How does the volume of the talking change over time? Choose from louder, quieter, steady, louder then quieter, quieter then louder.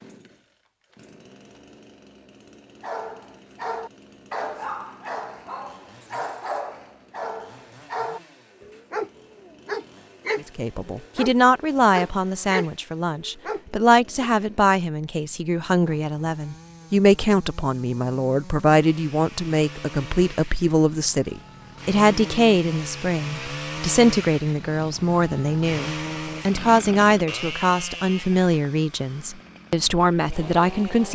steady.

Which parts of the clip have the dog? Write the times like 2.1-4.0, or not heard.
2.8-14.3.